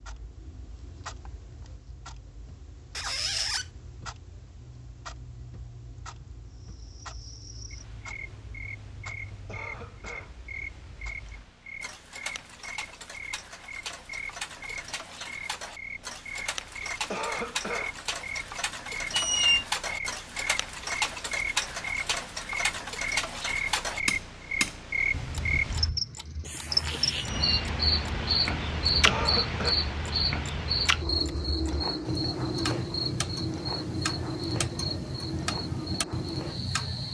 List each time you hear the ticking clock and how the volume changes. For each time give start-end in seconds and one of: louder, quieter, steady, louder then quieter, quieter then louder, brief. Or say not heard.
0.0-37.0 louder.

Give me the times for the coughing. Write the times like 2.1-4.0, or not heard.
9.4-10.3, 17.1-17.9, 29.1-29.8.